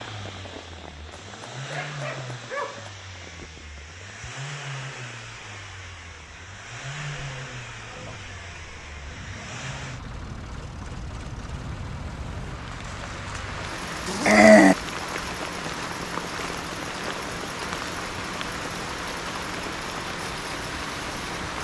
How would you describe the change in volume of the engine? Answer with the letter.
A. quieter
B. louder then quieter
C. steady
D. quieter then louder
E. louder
C.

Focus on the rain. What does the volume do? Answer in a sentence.
The volume of the rain goes up.